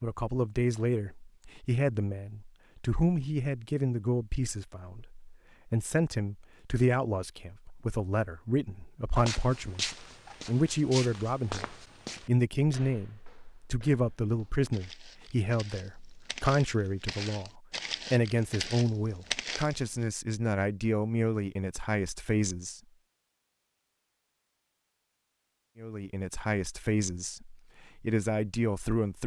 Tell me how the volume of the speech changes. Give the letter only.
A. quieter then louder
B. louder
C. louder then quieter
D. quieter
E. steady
E.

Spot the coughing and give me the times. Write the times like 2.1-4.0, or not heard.
not heard.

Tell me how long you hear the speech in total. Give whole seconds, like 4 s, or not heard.
26 s.